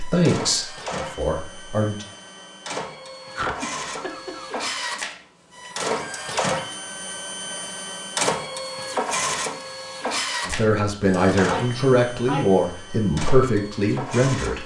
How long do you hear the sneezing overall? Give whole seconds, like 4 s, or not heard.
2 s.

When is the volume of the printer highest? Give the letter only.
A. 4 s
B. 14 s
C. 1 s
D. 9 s
D.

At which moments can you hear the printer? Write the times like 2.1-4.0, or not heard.
0.0-14.6.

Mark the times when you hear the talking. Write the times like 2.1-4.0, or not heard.
0.0-2.0, 10.4-14.6.